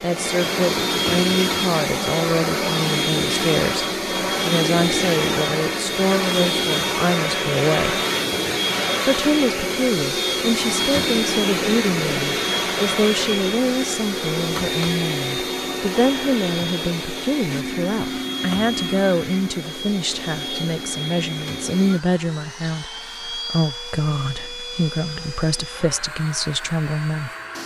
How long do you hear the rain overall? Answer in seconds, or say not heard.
not heard.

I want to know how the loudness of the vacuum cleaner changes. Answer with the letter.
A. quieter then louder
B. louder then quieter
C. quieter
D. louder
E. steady
C.